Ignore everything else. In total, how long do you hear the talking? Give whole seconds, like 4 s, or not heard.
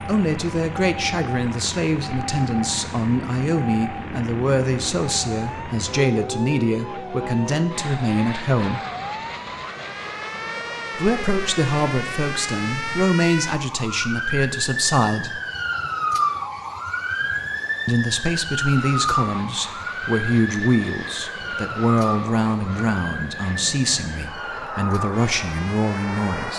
22 s.